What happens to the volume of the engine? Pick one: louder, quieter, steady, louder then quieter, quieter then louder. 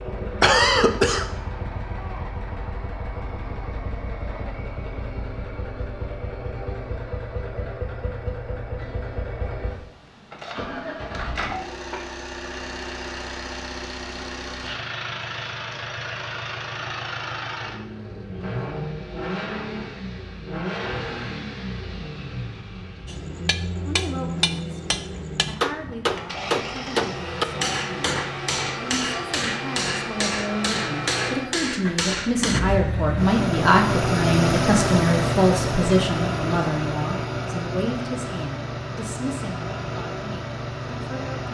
louder.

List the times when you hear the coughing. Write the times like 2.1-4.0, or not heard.
0.4-1.2.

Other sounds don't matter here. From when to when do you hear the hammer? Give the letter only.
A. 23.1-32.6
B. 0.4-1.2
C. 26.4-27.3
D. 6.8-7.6
A.